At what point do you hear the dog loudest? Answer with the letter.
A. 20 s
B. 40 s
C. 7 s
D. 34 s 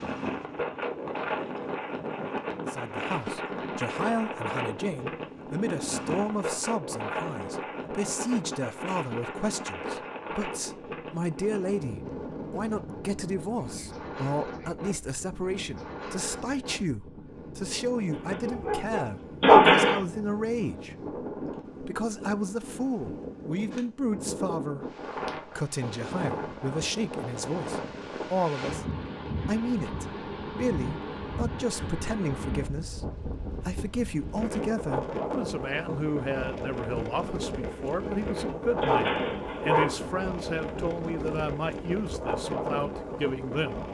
A.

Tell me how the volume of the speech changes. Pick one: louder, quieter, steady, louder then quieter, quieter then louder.
steady.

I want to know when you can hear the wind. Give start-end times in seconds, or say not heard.
0.0-43.8.